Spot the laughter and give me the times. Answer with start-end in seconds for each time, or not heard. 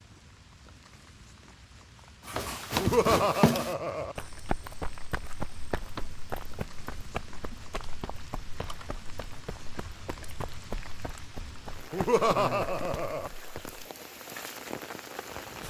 2.8-4.2, 11.9-13.3.